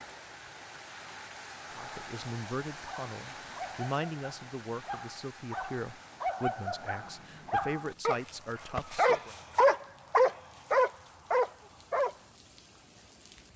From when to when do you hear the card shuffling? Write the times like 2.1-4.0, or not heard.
not heard.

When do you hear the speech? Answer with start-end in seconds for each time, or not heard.
1.8-9.3.